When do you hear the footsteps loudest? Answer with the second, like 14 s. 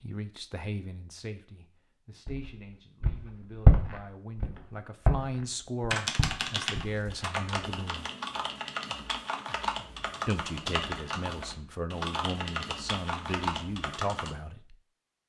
4 s.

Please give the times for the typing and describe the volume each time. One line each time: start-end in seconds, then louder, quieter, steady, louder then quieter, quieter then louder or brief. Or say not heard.
5.9-14.3 steady.